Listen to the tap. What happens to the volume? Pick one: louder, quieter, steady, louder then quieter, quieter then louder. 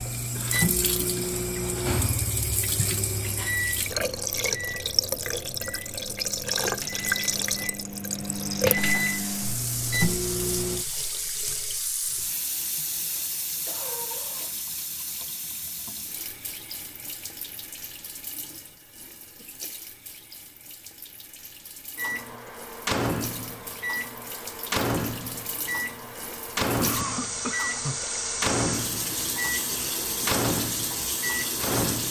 quieter then louder.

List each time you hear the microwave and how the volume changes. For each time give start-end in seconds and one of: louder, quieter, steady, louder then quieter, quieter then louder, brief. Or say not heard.
0.0-10.8 quieter then louder
21.9-32.0 steady.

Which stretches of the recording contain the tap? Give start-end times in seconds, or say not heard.
0.0-32.0.